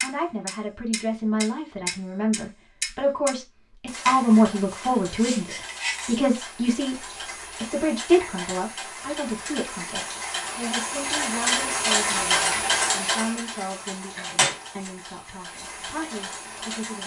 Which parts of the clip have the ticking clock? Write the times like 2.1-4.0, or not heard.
0.0-17.0.